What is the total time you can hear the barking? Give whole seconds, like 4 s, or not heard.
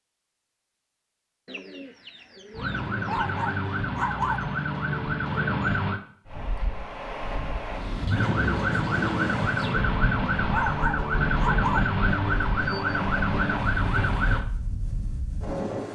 3 s.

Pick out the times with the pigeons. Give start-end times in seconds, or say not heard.
1.4-3.4, 8.1-9.8.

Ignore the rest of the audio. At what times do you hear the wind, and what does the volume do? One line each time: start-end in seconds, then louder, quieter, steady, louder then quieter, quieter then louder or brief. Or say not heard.
6.2-15.8 quieter.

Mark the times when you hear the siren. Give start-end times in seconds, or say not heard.
2.5-6.0, 8.1-14.4.